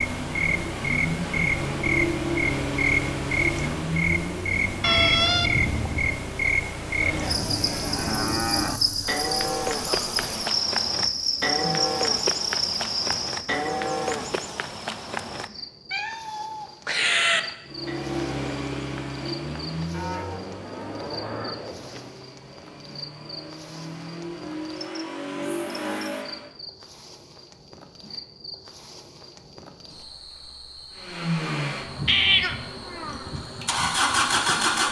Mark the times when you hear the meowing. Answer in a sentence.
The meowing can be heard from 4.8 to 6.2 s, from 15.9 to 17.4 s and from 32.0 to 33.3 s.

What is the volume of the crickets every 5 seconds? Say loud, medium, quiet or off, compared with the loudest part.
loud, loud, loud, quiet, quiet, quiet, quiet.